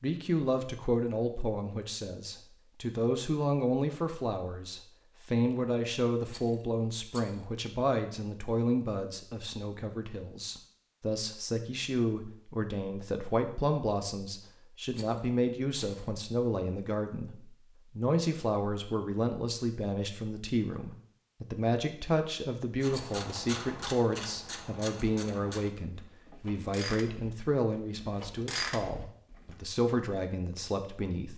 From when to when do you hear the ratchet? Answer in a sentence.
The ratchet can be heard from 22.8 to 29.6 s.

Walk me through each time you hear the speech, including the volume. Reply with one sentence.
You can hear the speech from 0.0 to 31.3 s, at a steady volume.